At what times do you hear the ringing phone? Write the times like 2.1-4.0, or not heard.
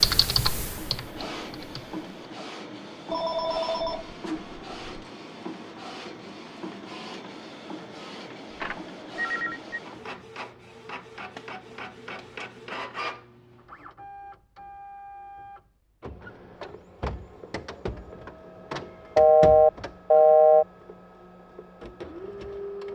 3.1-5.1, 8.6-9.8, 19.1-20.6.